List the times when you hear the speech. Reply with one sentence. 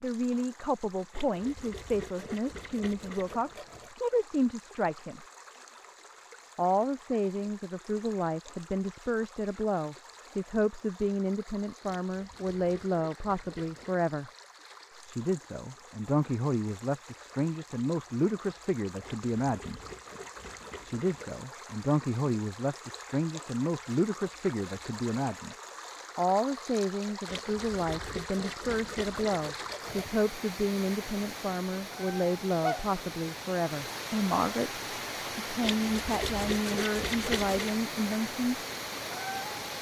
You can hear the speech from 0.0 to 5.2 s, from 6.5 to 14.3 s, from 15.1 to 19.8 s, from 20.8 to 25.6 s and from 26.1 to 38.5 s.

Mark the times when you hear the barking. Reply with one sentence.
The barking can't be heard in this clip.